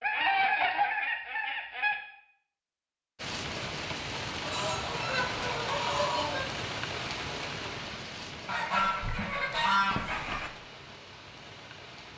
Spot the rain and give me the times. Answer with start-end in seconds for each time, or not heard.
3.1-12.1.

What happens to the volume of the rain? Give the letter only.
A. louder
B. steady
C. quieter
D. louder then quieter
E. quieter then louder
C.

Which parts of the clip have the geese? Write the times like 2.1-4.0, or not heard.
0.0-1.9, 4.4-6.5, 8.4-10.5.